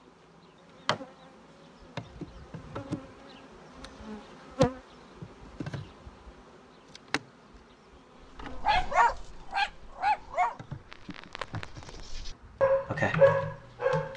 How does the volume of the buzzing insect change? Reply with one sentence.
The volume of the buzzing insect goes up, then down.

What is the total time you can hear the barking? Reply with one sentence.
You can hear the barking for 6 seconds altogether.